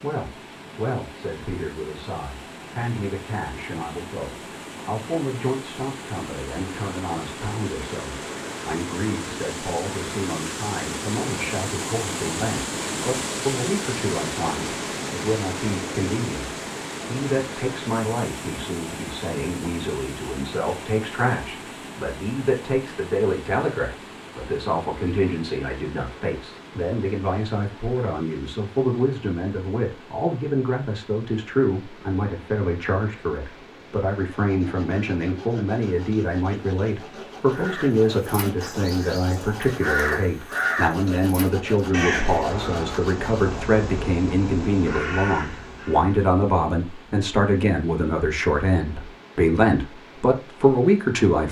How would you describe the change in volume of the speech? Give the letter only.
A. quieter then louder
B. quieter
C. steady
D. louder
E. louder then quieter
D.